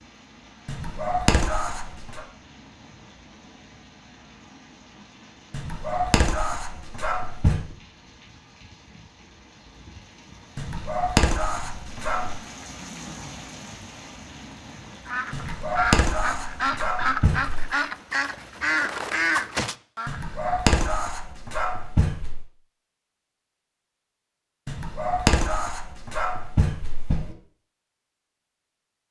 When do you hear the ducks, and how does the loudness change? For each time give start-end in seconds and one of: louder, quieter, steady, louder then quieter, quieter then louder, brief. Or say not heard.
14.9-20.6 steady.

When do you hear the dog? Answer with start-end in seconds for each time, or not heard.
0.7-2.2, 5.5-7.8, 10.6-12.4, 15.3-17.7, 20.1-22.4, 24.6-27.4.